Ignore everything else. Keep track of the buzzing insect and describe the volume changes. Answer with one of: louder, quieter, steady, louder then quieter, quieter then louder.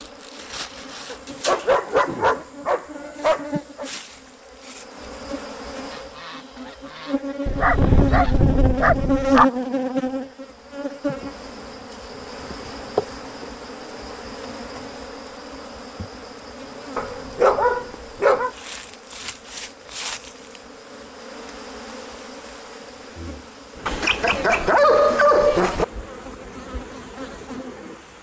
louder then quieter.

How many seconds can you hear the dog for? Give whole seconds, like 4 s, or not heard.
8 s.